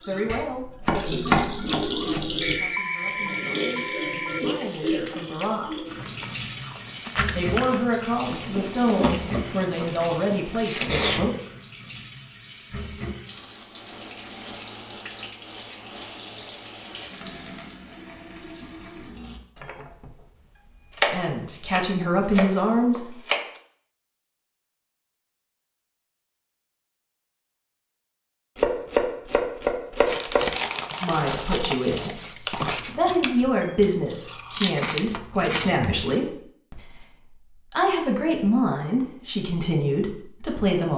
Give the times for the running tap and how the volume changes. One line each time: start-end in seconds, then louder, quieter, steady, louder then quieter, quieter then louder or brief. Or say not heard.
0.0-19.4 quieter.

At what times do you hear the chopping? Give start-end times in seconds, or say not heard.
0.2-2.5, 20.9-23.4, 28.6-30.4.